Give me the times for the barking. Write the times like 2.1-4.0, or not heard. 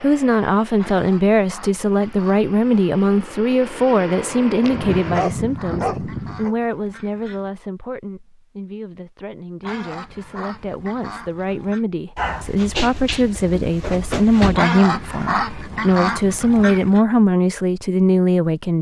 4.6-6.5, 12.2-14.7.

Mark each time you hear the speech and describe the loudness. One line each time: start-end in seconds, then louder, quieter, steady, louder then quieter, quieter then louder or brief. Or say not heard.
0.0-18.7 quieter then louder.